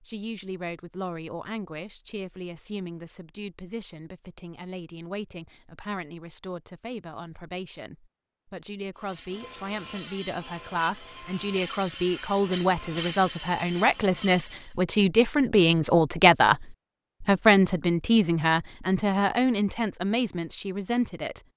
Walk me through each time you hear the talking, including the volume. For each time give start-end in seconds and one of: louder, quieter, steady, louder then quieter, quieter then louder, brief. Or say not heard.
0.0-21.4 louder.